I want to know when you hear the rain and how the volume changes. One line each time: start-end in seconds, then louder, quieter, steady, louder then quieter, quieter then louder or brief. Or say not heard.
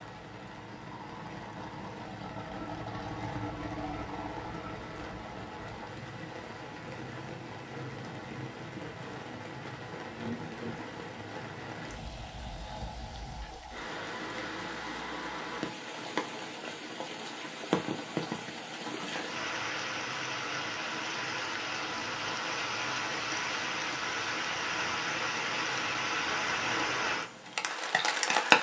0.0-28.5 louder.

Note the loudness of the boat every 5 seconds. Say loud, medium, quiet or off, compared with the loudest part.
loud, medium, medium, off, off, off.